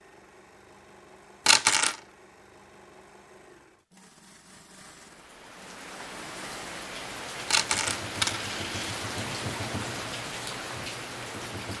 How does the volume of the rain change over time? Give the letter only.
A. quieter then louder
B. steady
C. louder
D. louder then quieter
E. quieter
C.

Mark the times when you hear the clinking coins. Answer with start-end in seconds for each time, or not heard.
1.4-1.9, 7.5-9.6.